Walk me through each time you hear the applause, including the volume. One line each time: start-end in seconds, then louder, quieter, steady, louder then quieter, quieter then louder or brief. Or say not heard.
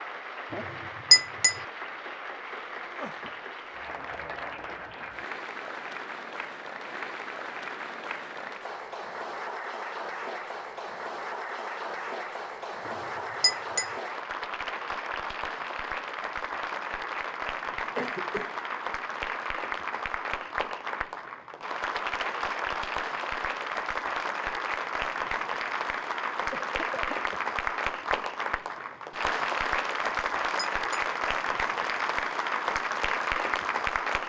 0.0-34.2 louder.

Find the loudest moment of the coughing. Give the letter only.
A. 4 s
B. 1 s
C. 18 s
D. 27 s
C.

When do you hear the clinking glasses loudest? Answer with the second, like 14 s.
1 s.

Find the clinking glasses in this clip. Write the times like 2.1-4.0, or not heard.
0.5-1.6, 12.8-13.9, 30.0-31.1.